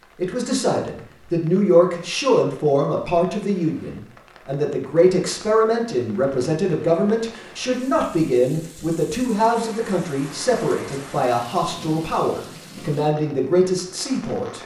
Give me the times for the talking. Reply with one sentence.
The talking can be heard from 0.1 to 14.6 s.